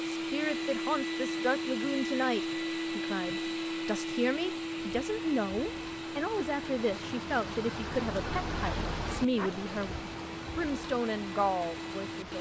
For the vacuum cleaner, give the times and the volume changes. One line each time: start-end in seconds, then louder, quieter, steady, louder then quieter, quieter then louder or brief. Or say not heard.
0.0-12.3 quieter.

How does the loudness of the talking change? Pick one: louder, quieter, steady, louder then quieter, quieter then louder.
steady.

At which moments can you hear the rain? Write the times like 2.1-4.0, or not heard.
4.2-12.3.